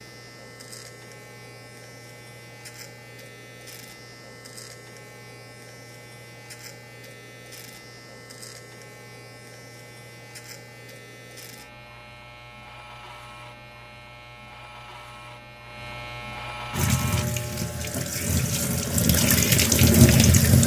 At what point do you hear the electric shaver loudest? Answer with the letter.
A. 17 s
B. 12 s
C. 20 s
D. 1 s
A.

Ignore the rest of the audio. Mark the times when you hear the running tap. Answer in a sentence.
The running tap can be heard from 16.7 to 20.6 s.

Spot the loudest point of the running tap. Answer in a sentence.
The volume of the running tap peaks at 20 seconds.